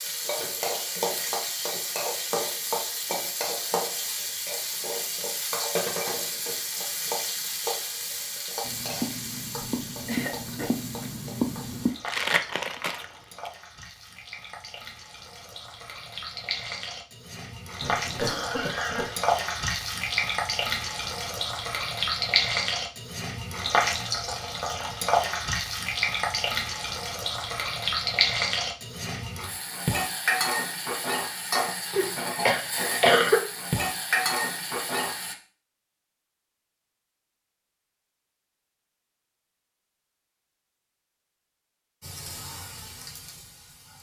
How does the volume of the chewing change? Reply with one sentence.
The loudness of the chewing goes up.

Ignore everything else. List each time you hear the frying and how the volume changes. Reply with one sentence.
You can hear the frying from 0.0 to 35.4 s, getting quieter then louder; and briefly from 42.0 to 43.9 s.